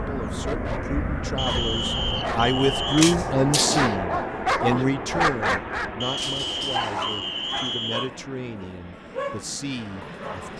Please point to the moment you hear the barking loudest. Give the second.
5 s.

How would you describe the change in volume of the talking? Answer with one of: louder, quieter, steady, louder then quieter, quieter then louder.
louder then quieter.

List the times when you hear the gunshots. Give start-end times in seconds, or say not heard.
3.0-4.0.